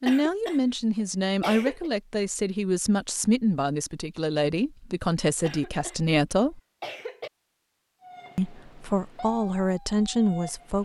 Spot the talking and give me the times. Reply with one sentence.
The talking can be heard from 0.0 to 6.6 s and from 8.3 to 10.7 s.